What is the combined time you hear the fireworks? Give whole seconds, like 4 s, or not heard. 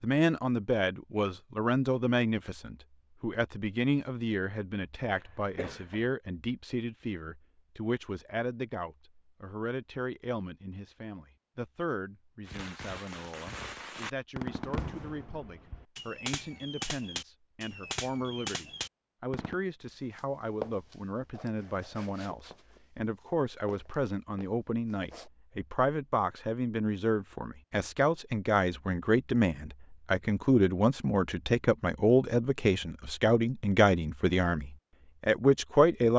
7 s.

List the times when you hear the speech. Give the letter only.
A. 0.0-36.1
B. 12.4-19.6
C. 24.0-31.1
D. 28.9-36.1
A.